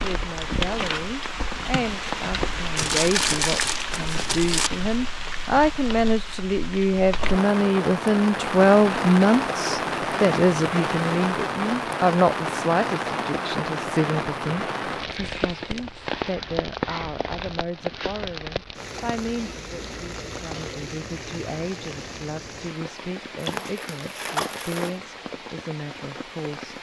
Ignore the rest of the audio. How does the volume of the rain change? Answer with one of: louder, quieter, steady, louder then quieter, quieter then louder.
quieter.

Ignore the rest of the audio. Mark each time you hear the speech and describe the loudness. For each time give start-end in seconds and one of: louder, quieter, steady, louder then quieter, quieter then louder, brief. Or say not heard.
0.0-26.7 louder then quieter.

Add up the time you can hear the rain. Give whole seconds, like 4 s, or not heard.
27 s.